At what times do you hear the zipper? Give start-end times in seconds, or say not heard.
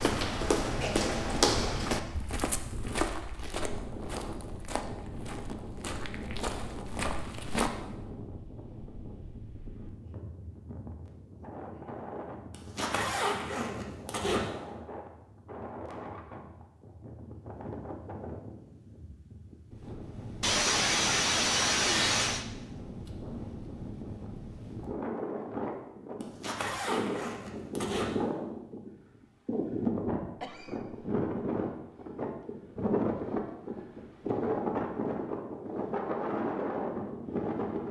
12.5-14.4, 26.2-28.1.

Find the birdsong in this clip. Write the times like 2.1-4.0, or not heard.
not heard.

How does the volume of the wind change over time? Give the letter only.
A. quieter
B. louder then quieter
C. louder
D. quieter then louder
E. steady
C.